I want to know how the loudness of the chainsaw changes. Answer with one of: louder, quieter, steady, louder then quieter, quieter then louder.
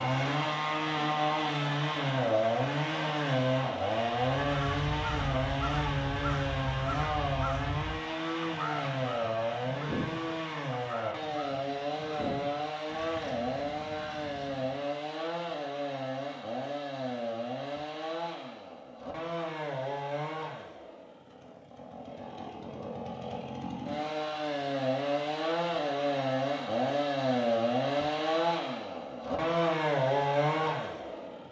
quieter then louder.